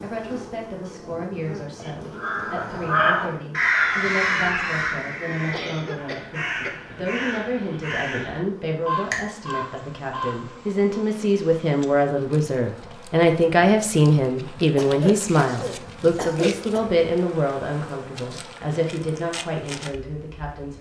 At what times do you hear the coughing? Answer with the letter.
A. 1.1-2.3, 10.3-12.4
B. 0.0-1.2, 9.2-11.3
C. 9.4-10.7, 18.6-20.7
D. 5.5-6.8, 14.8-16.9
D.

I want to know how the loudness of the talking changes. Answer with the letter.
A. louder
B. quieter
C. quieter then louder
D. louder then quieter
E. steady
D.